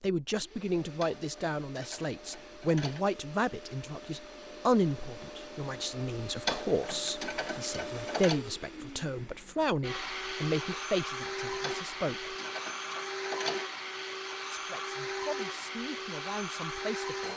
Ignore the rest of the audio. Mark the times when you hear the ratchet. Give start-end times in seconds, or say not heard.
1.0-3.0, 6.5-8.4, 11.6-13.7.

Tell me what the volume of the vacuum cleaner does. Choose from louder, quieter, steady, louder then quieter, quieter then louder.
louder.